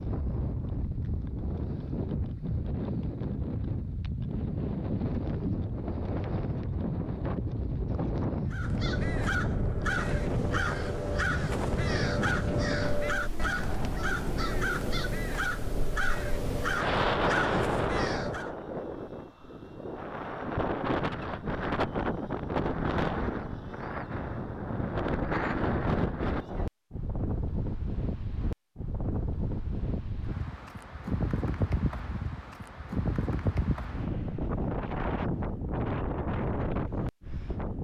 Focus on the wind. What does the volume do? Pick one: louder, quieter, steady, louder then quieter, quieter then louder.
steady.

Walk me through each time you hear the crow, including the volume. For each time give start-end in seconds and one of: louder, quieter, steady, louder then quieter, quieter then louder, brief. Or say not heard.
8.4-18.6 steady.